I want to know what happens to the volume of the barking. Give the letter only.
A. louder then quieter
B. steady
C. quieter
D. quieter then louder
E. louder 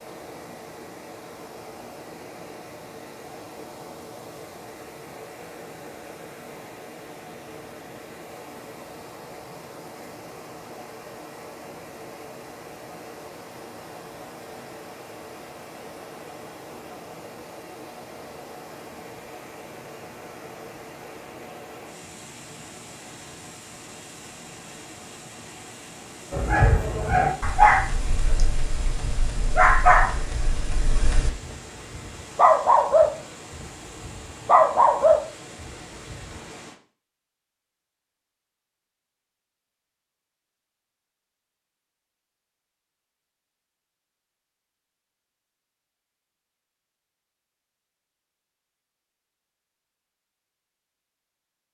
D.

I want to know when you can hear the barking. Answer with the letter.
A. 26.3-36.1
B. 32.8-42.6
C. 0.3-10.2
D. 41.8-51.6
A.